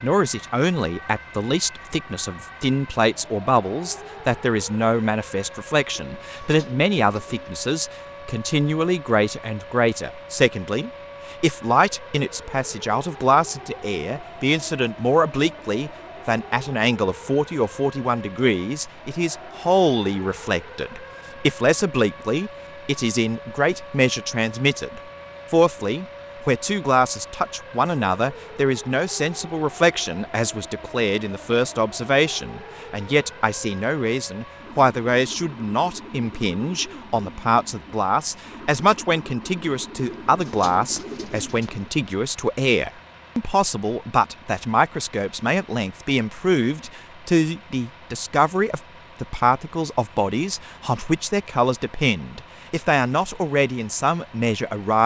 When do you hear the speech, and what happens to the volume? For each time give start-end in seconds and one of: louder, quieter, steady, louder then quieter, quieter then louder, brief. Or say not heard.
0.0-55.0 steady.